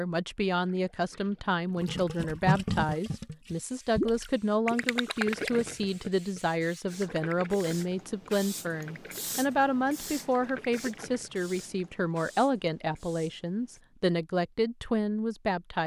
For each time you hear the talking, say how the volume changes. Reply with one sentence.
The talking can be heard from 0.0 to 15.8 s, at a steady volume.